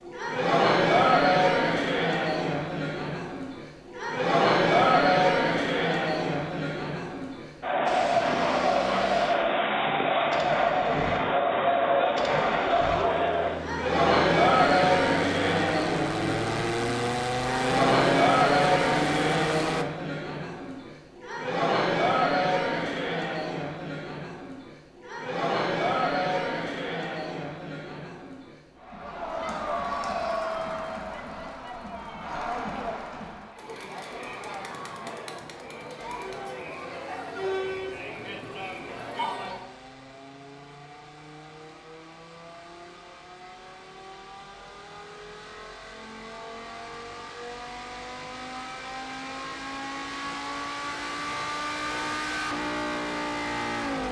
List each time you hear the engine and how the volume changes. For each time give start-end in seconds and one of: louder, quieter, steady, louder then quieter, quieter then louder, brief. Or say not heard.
7.8-19.9 louder
36.0-54.0 louder.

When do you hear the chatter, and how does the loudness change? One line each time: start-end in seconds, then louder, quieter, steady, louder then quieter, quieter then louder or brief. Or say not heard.
0.0-39.7 quieter.